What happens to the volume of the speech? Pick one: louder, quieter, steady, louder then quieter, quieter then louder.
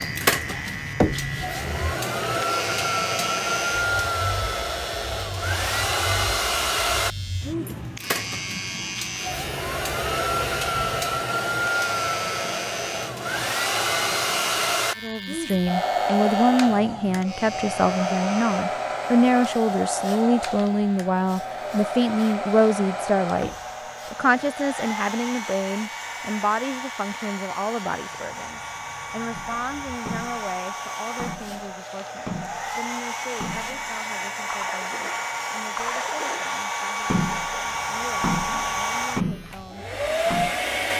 quieter.